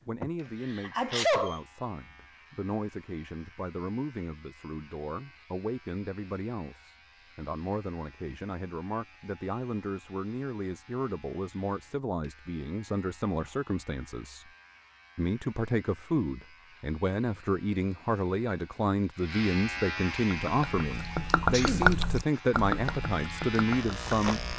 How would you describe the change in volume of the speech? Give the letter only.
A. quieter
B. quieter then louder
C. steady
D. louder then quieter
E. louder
E.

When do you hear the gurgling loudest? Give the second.
22 s.